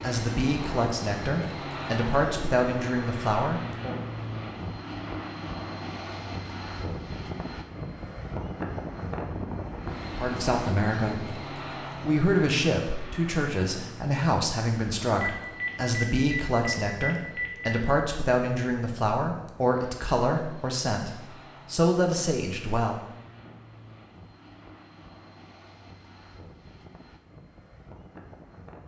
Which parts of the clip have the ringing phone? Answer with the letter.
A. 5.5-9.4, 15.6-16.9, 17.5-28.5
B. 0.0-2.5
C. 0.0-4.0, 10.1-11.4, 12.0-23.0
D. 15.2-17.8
D.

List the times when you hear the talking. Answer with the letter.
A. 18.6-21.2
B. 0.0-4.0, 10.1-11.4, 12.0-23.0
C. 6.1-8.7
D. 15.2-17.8
B.